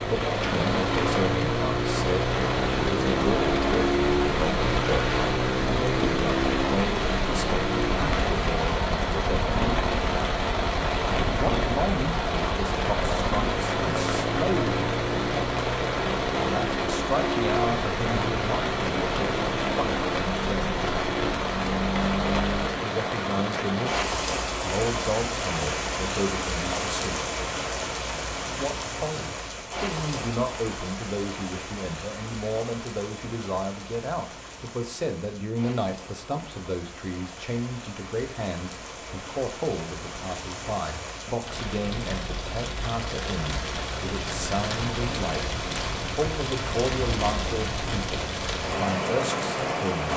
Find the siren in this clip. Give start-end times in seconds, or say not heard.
not heard.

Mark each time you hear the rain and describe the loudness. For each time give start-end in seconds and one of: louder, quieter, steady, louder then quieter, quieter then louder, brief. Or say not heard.
0.0-50.1 quieter then louder.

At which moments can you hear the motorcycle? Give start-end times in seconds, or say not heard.
0.0-22.8.